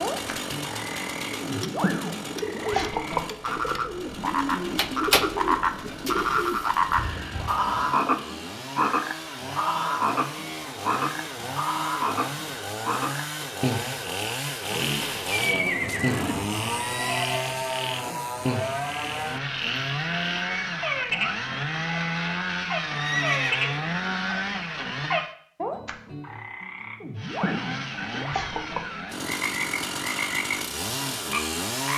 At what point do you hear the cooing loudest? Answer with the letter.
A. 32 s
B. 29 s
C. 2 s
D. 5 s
D.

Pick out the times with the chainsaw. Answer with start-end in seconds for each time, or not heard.
0.0-25.4, 27.1-31.9.